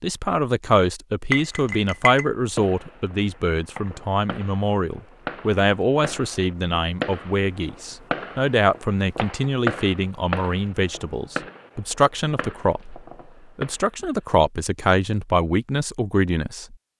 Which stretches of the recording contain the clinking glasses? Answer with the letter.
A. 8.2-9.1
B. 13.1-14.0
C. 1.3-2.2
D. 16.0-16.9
C.